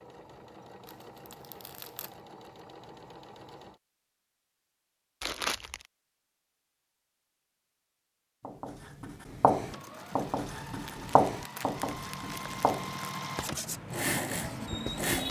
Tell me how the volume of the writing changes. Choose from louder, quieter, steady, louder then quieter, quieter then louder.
quieter.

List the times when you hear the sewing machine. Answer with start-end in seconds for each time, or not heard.
0.0-3.8, 9.7-15.2.